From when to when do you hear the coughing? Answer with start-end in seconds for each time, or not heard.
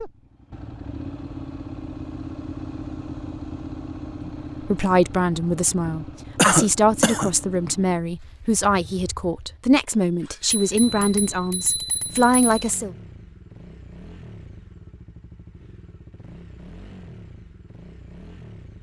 6.3-7.3.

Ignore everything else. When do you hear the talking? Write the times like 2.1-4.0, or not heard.
4.2-12.9.